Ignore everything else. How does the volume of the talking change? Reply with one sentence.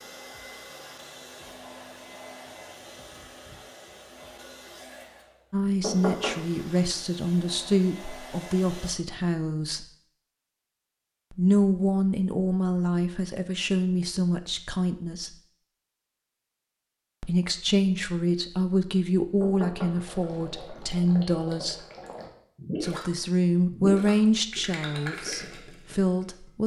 The volume of the talking stays about the same.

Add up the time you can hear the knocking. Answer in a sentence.
The knocking can be heard for 2 seconds in total.